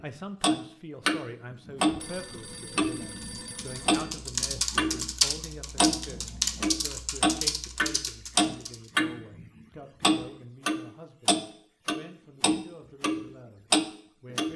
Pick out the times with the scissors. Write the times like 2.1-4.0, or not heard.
not heard.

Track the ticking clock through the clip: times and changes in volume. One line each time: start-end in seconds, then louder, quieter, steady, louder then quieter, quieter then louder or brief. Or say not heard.
0.4-14.5 steady.